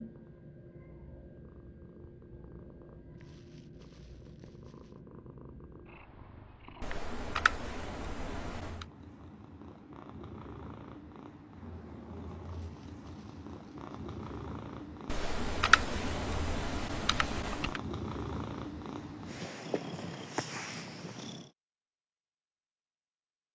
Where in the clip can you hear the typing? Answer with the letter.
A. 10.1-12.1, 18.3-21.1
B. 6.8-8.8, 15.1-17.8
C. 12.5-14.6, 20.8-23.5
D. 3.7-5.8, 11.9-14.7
B.